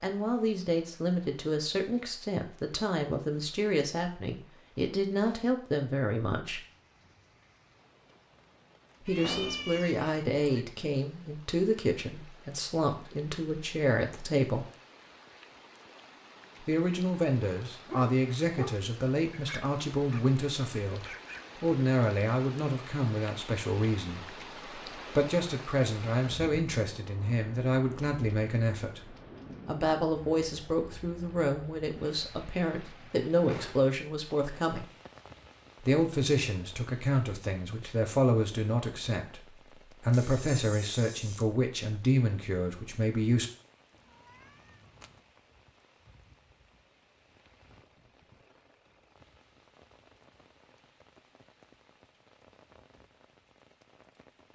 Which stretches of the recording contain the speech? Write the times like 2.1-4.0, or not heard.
0.0-6.7, 9.0-14.7, 16.6-34.9, 35.8-43.5.